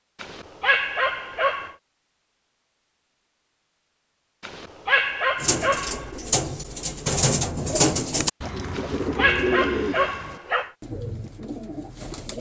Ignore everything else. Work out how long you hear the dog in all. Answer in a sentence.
The dog can be heard for 5 seconds in total.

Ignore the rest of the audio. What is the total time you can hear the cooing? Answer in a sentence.
The cooing can be heard for 7 seconds in total.